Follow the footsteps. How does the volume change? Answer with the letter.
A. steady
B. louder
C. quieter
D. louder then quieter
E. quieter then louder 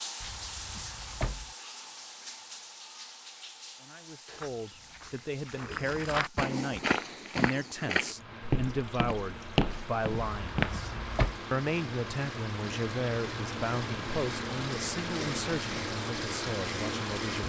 B.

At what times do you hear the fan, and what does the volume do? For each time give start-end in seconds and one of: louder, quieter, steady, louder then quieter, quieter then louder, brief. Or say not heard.
8.1-17.4 louder.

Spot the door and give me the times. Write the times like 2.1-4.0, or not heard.
0.2-1.5, 10.3-11.3.